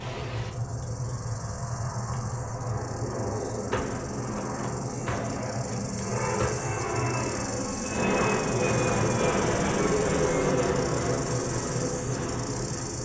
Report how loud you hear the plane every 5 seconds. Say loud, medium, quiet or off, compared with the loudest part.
medium, loud, loud.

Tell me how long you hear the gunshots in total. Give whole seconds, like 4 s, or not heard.
3 s.